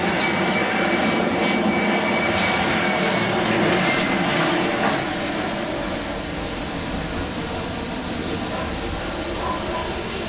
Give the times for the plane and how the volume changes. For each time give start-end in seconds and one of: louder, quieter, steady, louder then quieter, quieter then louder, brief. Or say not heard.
0.0-10.2 quieter.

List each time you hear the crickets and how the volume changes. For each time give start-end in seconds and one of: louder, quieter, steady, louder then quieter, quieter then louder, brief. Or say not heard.
0.0-10.2 louder.